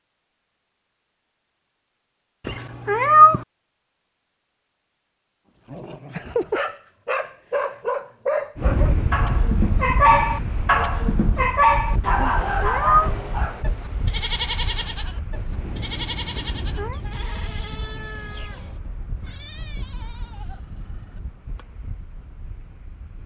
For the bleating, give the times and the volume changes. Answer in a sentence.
You can hear the bleating from 13.6 to 21.6 s, getting quieter.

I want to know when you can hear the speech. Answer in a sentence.
The speech can't be heard in this clip.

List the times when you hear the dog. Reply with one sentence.
The dog can be heard from 5.7 to 13.8 s.